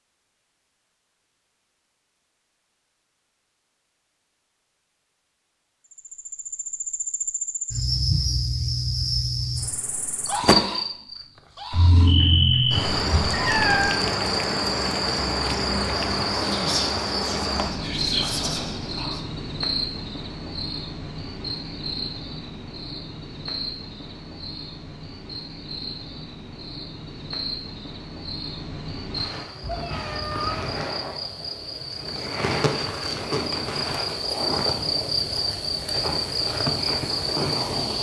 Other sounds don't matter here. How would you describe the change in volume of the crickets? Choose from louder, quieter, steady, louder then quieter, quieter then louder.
quieter then louder.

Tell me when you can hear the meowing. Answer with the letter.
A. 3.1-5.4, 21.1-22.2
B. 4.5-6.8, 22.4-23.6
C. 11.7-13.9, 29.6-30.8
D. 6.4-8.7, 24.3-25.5
C.